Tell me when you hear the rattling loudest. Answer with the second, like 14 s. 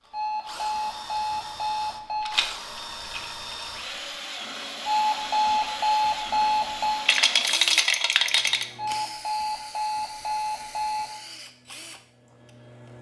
8 s.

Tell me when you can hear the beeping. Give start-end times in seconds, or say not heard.
0.1-2.4, 4.8-7.1, 8.8-11.1.